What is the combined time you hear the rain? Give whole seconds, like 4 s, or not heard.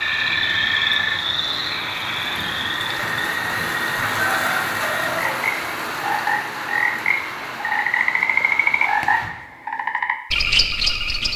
9 s.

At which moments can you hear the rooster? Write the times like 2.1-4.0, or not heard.
4.0-5.4.